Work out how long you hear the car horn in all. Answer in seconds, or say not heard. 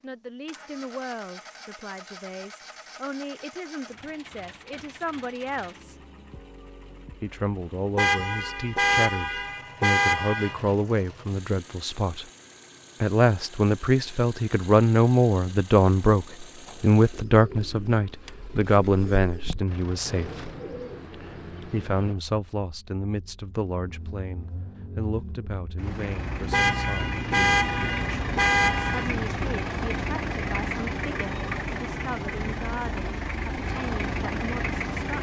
5 s.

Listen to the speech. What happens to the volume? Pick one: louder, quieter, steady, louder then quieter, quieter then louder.
louder then quieter.